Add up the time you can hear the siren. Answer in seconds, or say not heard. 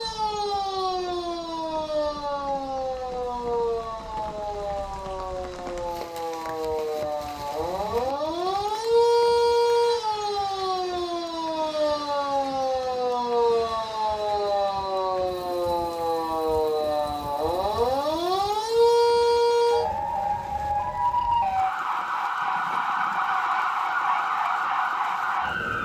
26 s.